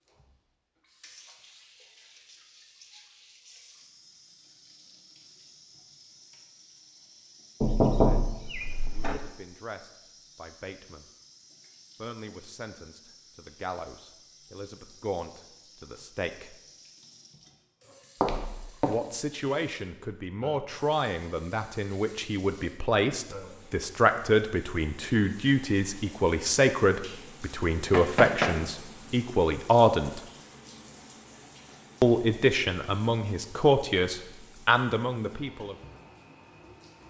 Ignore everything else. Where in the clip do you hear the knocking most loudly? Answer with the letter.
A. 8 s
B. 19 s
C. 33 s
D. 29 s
A.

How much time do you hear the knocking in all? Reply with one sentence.
You can hear the knocking for 3 seconds altogether.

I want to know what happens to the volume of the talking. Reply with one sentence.
The volume of the talking goes up.